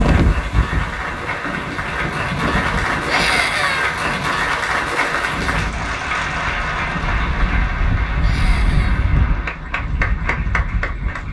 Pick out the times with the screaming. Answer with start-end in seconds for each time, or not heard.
3.0-4.0, 8.2-9.1.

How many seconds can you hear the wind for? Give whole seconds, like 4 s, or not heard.
11 s.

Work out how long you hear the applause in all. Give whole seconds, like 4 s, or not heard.
11 s.